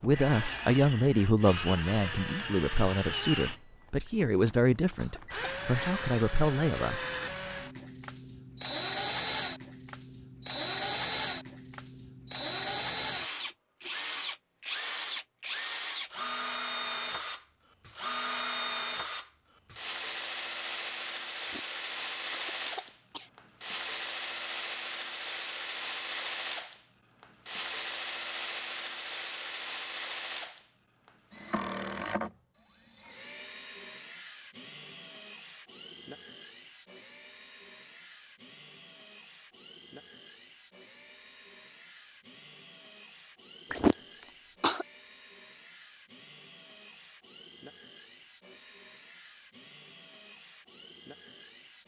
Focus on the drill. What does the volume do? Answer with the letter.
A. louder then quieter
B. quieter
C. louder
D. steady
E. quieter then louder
B.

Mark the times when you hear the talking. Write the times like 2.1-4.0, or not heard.
0.0-7.0.